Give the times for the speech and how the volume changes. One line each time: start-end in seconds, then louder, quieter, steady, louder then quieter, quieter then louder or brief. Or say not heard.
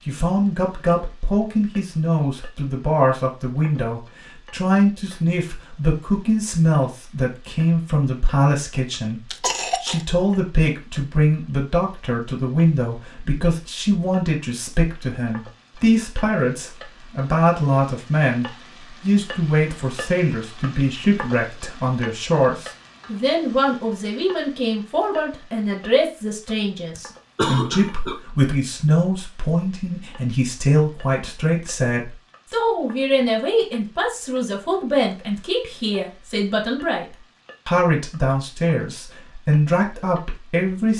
0.1-40.9 steady.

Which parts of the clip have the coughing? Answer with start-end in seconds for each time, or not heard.
9.3-10.1, 26.9-28.2.